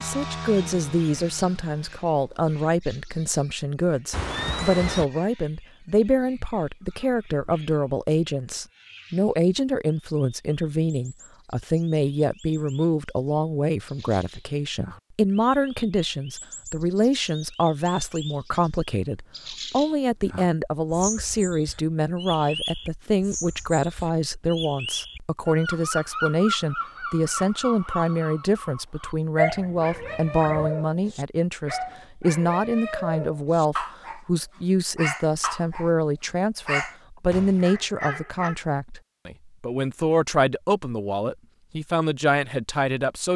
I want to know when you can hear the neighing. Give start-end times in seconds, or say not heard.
4.1-5.0, 37.3-38.2.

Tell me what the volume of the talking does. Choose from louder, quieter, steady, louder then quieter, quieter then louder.
steady.